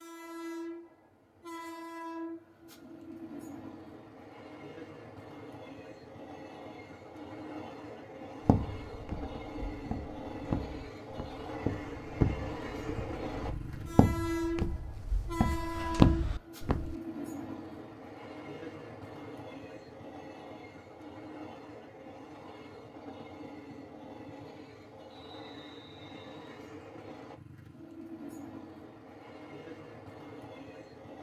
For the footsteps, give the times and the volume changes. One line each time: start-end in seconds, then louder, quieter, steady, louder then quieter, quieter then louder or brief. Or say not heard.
8.4-16.9 louder.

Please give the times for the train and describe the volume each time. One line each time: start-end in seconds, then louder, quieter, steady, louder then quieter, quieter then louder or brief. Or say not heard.
0.0-31.1 louder then quieter.